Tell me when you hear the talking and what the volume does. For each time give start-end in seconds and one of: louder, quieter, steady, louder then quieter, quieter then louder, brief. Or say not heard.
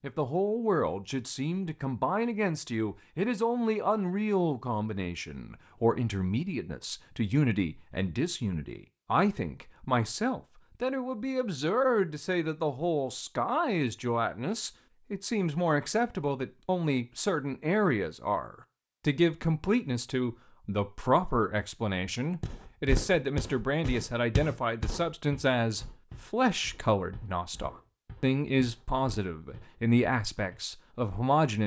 0.0-31.6 steady.